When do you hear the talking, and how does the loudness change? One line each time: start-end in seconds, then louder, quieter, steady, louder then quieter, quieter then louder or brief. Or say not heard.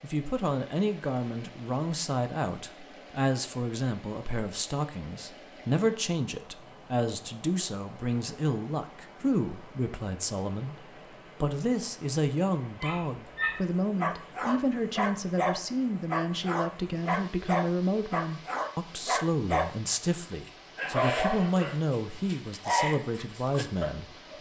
0.0-24.3 steady.